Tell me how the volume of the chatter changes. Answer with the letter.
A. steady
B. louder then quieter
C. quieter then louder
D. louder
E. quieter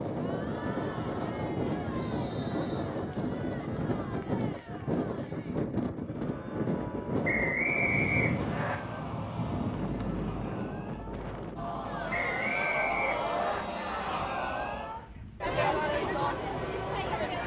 D.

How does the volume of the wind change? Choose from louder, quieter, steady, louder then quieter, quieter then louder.
quieter.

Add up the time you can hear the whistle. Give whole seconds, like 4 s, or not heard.
4 s.